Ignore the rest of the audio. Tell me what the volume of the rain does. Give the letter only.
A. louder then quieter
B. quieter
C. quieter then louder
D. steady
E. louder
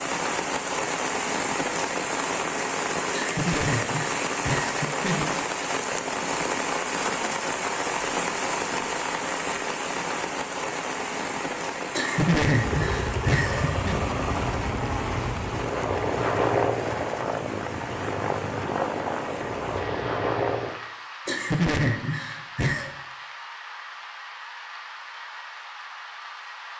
B.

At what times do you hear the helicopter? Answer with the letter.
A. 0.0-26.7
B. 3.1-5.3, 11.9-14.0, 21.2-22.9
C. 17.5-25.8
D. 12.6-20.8
D.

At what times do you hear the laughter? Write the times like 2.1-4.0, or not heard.
3.1-5.3, 11.9-14.0, 21.2-22.9.